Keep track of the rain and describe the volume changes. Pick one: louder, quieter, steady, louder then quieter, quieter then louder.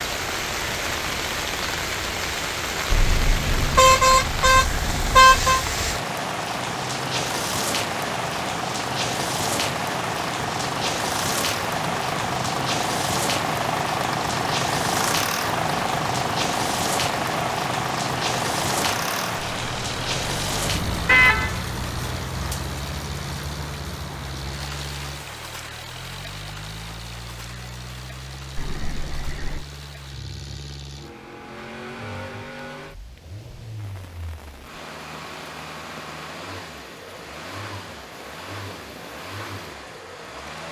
quieter.